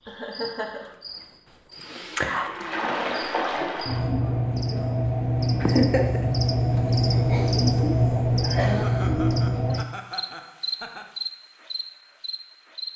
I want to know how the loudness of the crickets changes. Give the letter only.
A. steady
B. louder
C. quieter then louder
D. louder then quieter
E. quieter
D.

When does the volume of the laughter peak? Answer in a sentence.
The loudest moment of the laughter is at 6 seconds.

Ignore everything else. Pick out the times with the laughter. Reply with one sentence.
You can hear the laughter from 0.1 to 0.9 s, from 5.6 to 6.2 s and from 8.8 to 11.1 s.